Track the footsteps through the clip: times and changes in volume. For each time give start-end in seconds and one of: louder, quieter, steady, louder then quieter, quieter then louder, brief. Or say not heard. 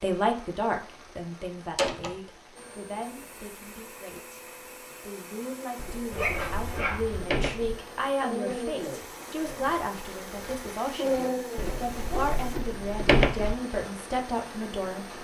not heard.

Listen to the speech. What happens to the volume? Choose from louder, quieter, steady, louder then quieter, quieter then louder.
quieter then louder.